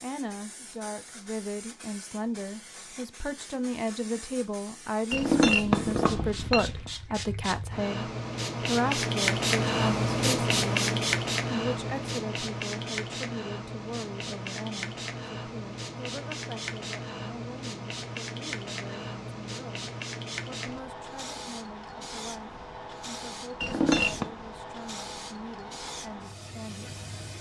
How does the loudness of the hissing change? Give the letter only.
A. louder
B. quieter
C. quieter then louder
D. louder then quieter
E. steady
D.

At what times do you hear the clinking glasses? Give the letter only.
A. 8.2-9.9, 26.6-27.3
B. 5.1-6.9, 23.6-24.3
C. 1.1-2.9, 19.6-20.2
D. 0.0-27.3
B.